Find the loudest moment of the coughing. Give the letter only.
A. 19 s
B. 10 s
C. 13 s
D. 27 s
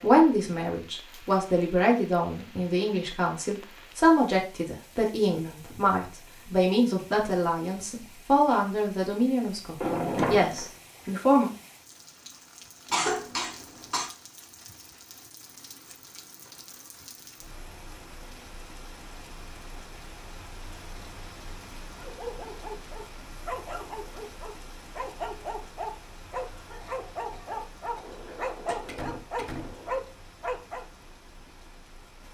C.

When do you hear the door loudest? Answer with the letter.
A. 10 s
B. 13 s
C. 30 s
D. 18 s
A.